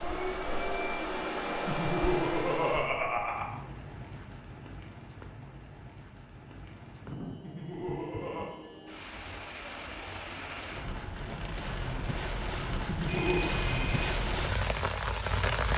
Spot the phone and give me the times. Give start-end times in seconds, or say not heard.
13.1-14.1.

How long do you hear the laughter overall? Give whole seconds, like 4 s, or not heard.
4 s.